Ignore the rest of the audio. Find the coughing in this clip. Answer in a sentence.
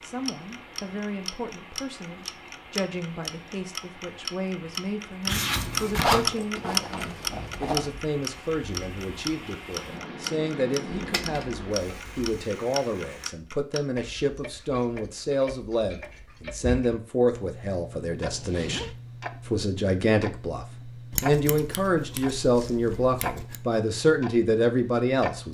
The coughing can't be heard in this clip.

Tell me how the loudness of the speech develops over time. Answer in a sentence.
The loudness of the speech goes up.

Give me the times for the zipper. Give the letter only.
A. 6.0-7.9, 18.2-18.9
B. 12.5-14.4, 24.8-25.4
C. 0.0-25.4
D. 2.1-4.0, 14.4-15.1
A.